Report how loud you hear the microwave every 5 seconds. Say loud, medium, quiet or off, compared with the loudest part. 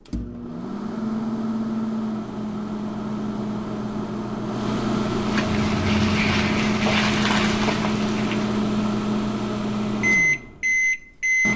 medium, loud, loud.